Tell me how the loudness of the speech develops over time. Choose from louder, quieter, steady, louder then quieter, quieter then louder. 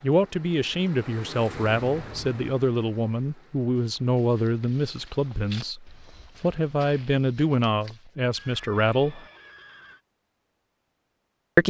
steady.